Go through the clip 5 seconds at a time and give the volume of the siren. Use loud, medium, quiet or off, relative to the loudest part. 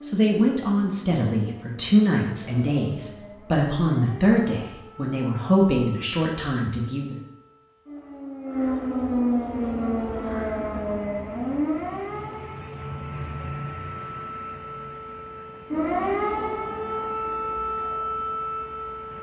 quiet, loud, loud, loud.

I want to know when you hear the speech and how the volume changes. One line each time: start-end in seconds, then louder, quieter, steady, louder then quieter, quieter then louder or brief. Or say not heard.
0.0-7.2 steady.